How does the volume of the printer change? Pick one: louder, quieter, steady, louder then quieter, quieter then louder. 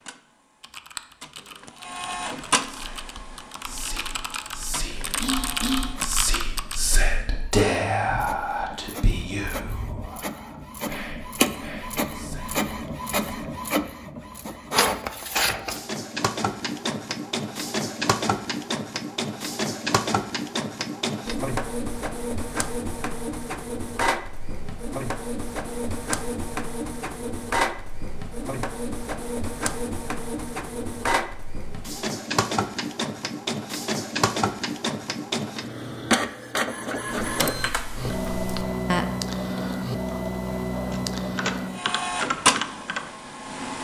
louder.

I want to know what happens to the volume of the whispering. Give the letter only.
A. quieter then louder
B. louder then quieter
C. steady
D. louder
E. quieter
B.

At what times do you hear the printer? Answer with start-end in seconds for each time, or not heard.
0.0-43.7.